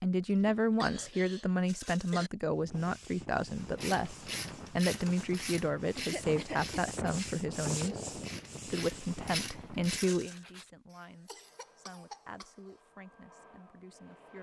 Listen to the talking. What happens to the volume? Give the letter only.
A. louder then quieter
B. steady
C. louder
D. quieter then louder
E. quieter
E.